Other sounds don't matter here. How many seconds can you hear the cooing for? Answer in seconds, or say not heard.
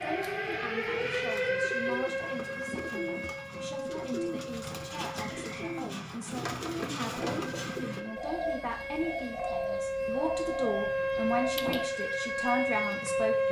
11 s.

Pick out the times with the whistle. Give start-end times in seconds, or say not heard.
5.2-5.8.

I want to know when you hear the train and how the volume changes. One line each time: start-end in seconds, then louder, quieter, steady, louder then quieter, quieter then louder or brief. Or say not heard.
not heard.